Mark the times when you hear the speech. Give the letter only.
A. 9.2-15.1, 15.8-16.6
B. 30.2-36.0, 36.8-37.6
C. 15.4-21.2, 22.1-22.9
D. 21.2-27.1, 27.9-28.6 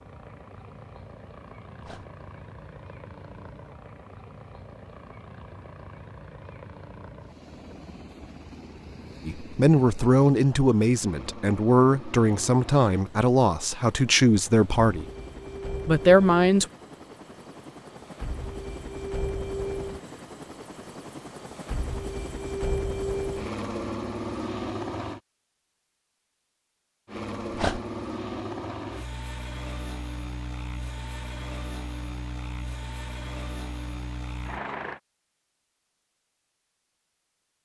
A.